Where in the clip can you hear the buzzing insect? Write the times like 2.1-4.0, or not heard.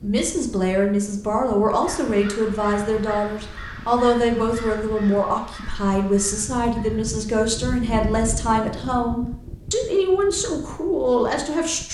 not heard.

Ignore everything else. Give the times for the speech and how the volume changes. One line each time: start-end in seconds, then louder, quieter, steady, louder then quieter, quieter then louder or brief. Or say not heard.
0.0-11.8 steady.